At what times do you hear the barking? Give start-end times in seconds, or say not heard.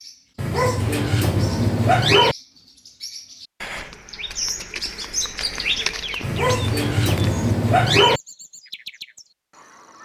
0.3-2.4, 6.2-8.2.